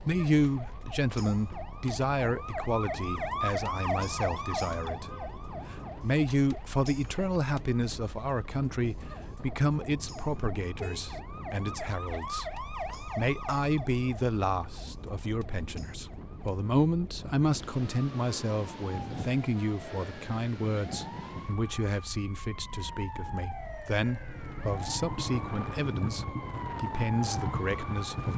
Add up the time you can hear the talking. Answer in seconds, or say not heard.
28 s.